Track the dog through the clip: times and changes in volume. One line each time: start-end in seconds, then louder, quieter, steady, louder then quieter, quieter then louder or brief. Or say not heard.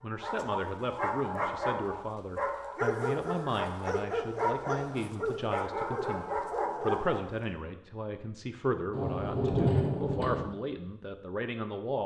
0.2-7.5 steady.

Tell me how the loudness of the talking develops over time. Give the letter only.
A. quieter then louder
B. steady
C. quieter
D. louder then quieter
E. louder
B.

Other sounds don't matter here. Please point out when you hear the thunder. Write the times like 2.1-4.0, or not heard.
8.9-10.4.